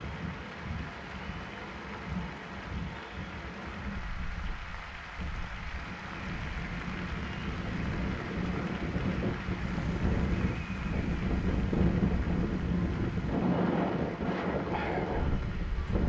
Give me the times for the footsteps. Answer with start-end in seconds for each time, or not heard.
not heard.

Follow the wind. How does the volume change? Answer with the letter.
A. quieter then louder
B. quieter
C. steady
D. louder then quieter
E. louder
E.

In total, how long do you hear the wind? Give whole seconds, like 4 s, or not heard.
16 s.